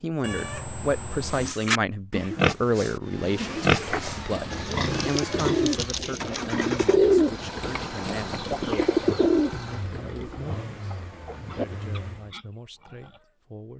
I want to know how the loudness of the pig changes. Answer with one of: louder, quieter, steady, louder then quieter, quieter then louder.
quieter.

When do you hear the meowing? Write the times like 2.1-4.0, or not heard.
0.2-1.6.